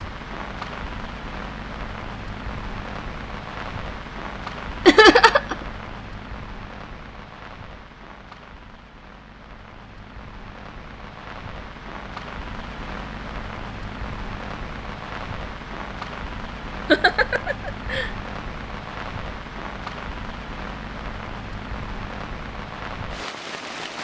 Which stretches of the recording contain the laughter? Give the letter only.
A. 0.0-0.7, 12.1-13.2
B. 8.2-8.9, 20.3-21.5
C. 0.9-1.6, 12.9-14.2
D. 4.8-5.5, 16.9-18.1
D.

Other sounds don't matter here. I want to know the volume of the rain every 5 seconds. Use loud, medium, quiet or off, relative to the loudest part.
loud, medium, loud, loud, loud.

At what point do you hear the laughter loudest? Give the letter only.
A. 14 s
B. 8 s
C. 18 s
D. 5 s
D.